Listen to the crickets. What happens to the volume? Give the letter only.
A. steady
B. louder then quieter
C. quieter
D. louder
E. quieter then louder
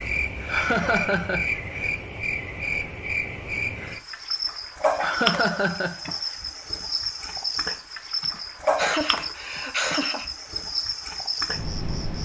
A.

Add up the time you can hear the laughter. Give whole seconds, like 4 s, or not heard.
5 s.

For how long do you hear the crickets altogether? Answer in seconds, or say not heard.
12 s.